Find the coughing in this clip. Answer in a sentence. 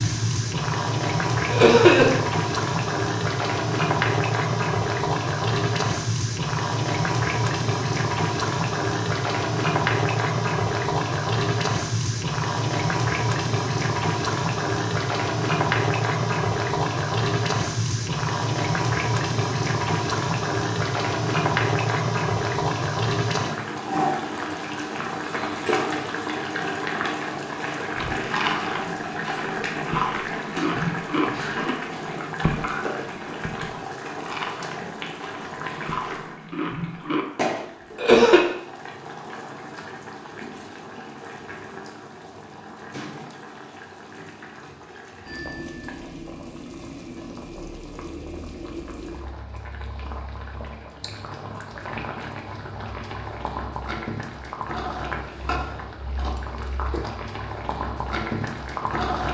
The coughing can be heard from 1.5 to 2.1 s and from 38.0 to 38.4 s.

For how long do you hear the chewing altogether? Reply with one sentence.
The chewing can be heard for 9 seconds in total.